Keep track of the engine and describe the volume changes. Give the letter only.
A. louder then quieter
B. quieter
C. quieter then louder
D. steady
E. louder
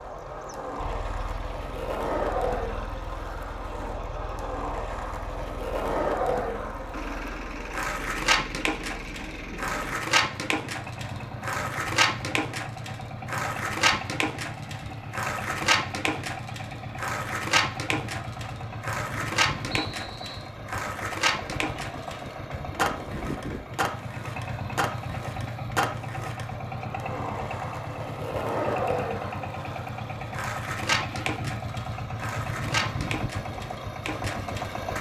E.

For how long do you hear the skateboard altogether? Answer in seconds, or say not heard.
35 s.